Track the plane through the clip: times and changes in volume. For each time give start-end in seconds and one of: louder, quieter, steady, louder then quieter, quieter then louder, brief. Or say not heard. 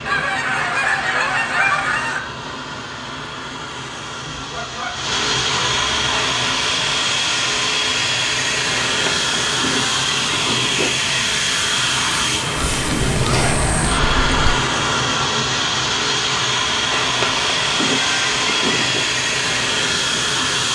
0.0-20.6 louder.